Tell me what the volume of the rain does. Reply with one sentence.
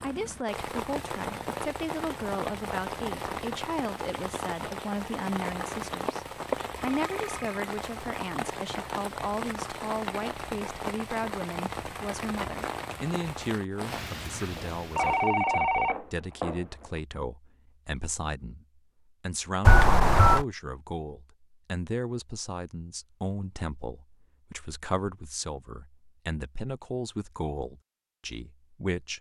The volume of the rain stays about the same.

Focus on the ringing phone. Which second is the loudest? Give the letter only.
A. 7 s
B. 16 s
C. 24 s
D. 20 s
D.